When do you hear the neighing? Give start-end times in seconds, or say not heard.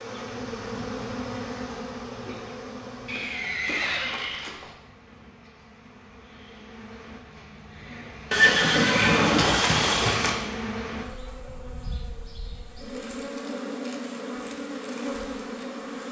3.0-4.8, 8.3-10.3.